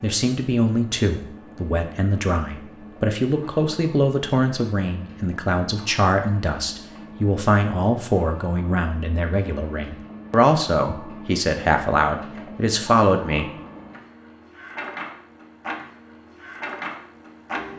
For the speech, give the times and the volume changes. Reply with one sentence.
You can hear the speech from 0.0 to 13.5 s, at a steady volume.